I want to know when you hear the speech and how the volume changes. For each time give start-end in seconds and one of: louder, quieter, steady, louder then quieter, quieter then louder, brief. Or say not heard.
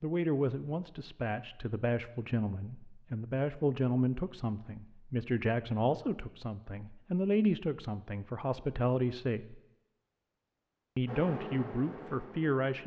0.0-9.6 steady
10.9-12.8 brief.